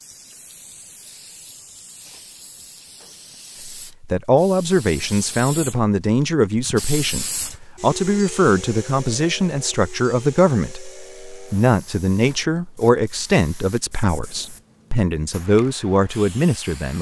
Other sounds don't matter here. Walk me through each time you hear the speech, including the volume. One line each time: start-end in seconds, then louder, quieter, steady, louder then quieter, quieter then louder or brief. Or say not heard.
3.6-16.9 steady.